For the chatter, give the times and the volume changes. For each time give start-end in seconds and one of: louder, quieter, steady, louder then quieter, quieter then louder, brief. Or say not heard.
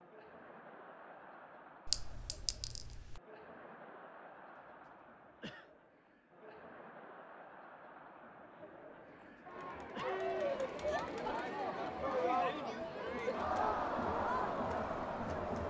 0.0-15.6 louder.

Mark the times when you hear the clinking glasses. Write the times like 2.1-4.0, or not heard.
1.9-3.2.